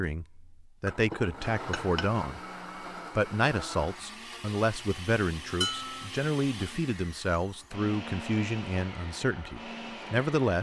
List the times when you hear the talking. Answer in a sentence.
You can hear the talking from 0.0 to 2.4 s and from 3.1 to 10.5 s.